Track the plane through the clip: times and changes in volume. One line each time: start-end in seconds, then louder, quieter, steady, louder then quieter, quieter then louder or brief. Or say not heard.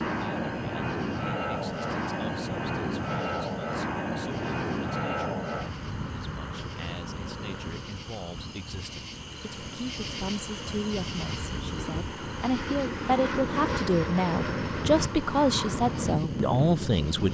0.0-17.3 quieter then louder.